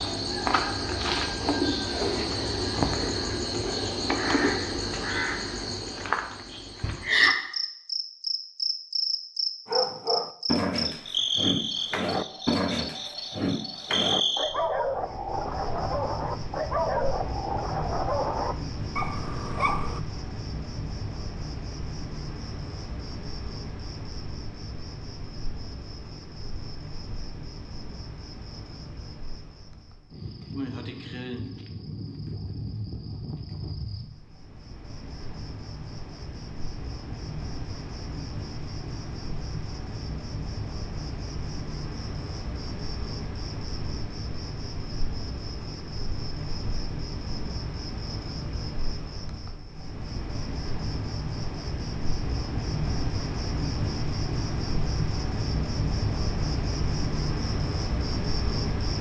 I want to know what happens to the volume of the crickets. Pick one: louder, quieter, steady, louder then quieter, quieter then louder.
quieter then louder.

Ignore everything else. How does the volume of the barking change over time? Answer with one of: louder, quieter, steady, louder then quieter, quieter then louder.
steady.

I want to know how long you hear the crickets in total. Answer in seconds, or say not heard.
59 s.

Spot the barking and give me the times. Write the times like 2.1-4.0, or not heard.
9.7-20.0.